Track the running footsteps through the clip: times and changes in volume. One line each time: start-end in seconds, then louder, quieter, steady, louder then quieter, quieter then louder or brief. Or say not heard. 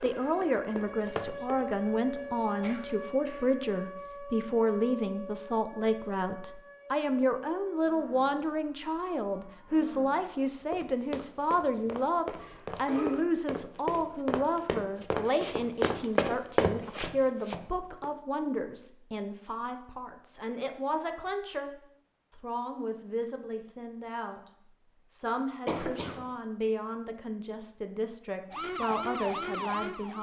0.0-1.6 brief
10.3-18.1 louder.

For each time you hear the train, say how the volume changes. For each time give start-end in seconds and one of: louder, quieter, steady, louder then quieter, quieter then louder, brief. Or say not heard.
not heard.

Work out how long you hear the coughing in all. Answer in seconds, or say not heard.
2 s.